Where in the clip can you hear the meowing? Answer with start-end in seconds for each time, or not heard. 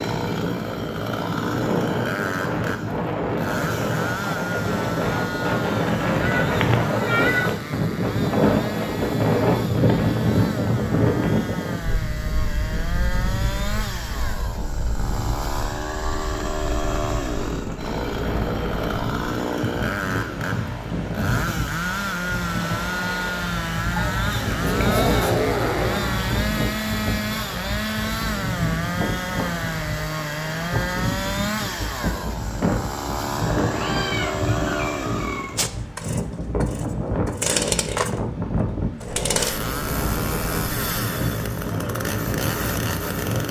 6.2-7.5, 23.9-26.6, 33.6-35.5.